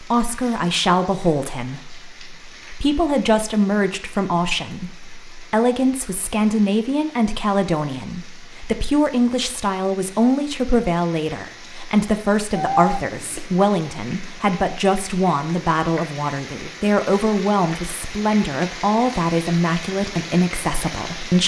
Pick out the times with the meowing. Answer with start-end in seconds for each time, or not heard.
12.6-13.4.